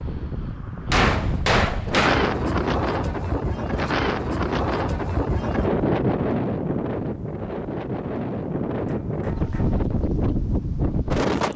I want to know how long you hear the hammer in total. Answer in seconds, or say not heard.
2 s.